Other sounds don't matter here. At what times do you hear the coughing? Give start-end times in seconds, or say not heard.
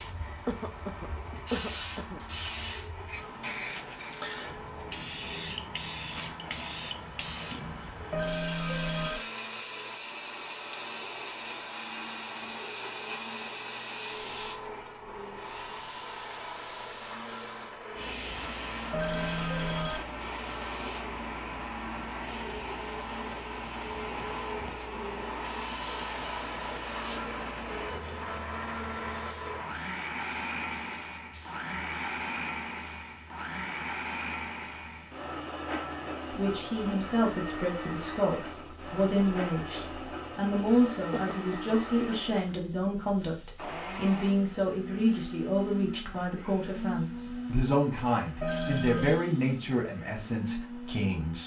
0.5-2.2, 41.1-41.8.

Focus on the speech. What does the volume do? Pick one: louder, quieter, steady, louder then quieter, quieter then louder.
steady.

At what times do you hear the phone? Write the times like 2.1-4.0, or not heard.
8.1-9.2, 18.9-20.0, 48.4-49.2.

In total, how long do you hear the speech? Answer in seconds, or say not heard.
15 s.